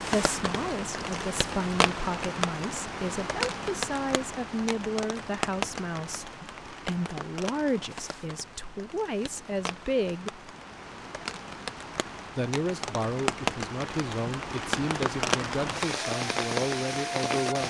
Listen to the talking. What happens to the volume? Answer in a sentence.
The loudness of the talking stays about the same.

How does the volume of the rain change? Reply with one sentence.
The volume of the rain goes down, then up.